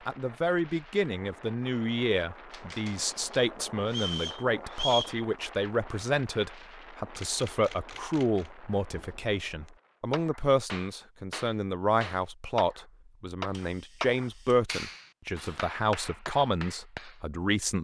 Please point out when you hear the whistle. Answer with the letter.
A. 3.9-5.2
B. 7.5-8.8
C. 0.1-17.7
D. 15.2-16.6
A.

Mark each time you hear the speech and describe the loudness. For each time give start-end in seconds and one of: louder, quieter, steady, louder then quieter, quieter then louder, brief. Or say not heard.
0.1-17.7 steady.